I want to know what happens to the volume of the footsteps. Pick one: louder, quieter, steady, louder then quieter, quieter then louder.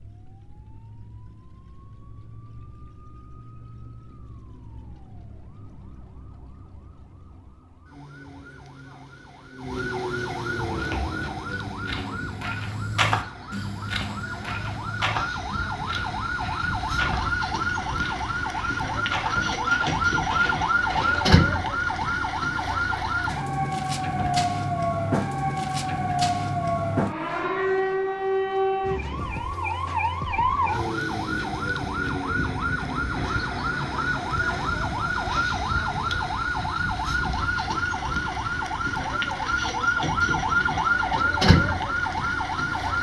louder then quieter.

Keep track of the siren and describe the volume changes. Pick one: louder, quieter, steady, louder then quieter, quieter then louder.
louder.